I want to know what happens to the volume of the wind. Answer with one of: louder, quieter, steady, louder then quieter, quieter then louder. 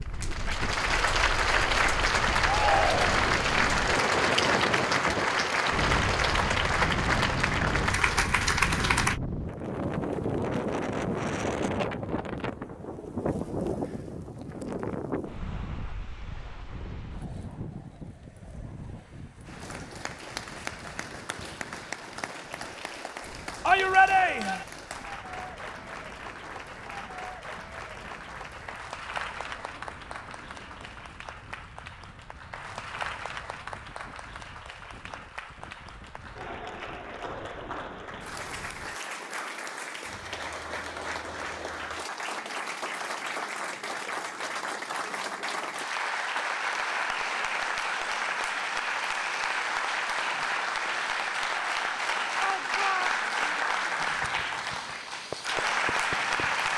quieter.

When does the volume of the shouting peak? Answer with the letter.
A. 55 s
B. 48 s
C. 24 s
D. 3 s
C.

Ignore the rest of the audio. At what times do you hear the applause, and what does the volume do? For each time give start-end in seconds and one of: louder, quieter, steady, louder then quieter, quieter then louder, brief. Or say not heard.
0.1-9.2 steady
19.4-56.7 louder.